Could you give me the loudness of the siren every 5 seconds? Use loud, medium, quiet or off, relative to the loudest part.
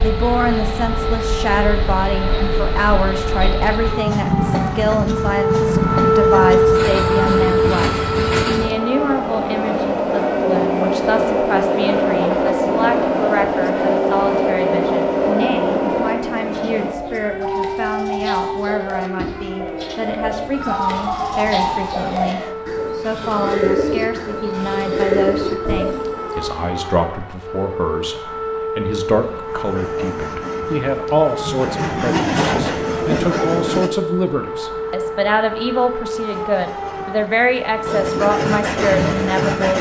medium, loud, medium, medium, medium, medium, medium, medium.